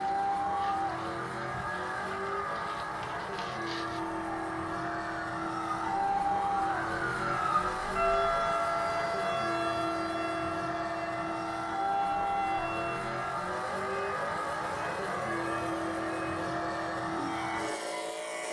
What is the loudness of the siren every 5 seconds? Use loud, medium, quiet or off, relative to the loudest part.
medium, loud, medium, medium.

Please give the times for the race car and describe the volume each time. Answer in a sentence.
You can hear the race car from 0.0 to 18.4 s, at a steady volume.